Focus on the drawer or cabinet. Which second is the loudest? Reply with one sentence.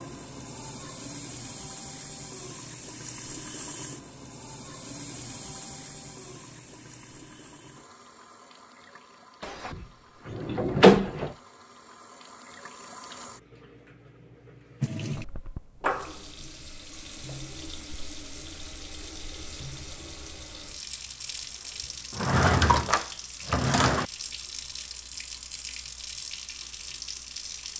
The loudest moment of the drawer or cabinet is at 11 seconds.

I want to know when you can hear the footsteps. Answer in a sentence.
You can't hear the footsteps here.